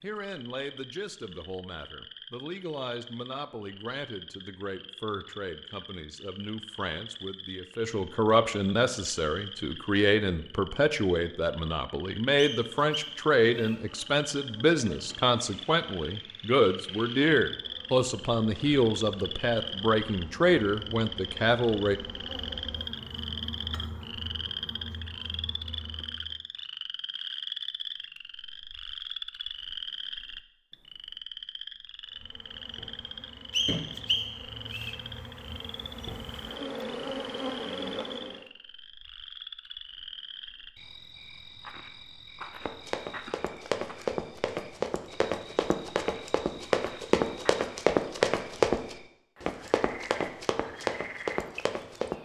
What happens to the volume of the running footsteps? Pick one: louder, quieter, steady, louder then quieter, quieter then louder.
louder then quieter.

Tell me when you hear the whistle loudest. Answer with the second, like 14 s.
34 s.